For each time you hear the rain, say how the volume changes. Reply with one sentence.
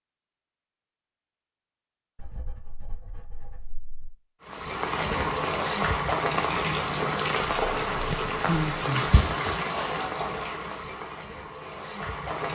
The rain can be heard from 4.4 to 12.5 s, getting quieter.